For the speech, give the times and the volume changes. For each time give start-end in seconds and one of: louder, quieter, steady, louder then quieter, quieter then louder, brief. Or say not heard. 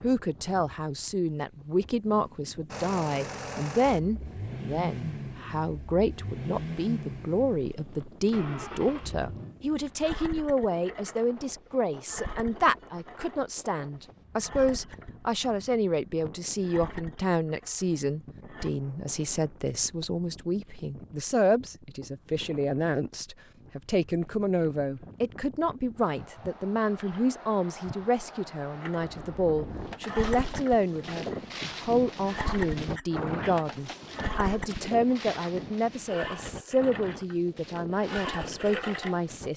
0.0-39.5 steady.